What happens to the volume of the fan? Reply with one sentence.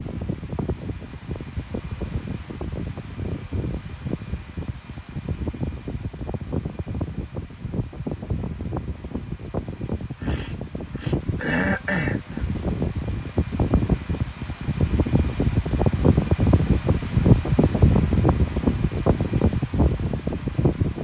The loudness of the fan goes up.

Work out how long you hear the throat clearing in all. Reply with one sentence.
You can hear the throat clearing for 2 seconds altogether.